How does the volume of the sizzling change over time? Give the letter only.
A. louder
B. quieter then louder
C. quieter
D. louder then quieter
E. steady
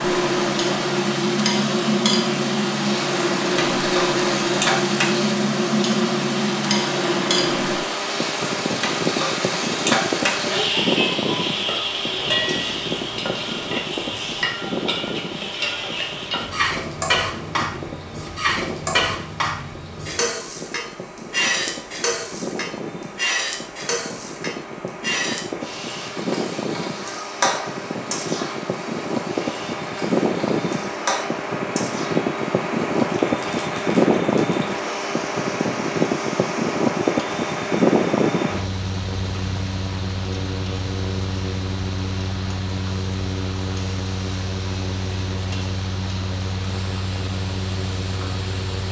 C.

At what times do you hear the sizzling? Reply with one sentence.
The sizzling can be heard from 0.0 to 48.8 s.